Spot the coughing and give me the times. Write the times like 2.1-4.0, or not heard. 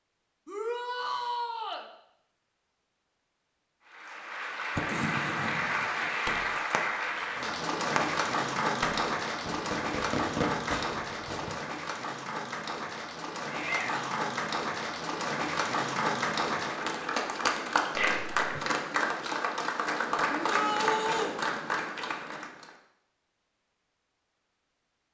17.9-18.6.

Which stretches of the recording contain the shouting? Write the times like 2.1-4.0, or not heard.
0.5-1.9, 13.5-14.2, 20.3-21.4.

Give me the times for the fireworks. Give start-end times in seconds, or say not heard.
4.8-11.6.